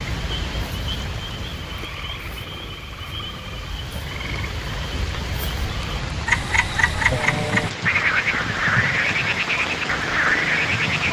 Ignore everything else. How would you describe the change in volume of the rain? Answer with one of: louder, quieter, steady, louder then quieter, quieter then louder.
louder.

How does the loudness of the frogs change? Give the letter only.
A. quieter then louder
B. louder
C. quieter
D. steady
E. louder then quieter
B.